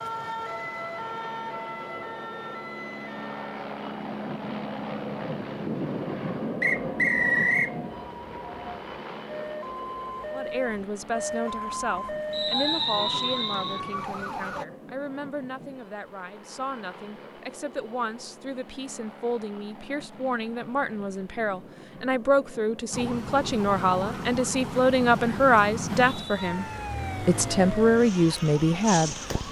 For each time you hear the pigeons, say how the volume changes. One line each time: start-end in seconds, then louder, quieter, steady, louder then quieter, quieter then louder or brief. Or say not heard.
not heard.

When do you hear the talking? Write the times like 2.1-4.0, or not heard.
10.3-29.4.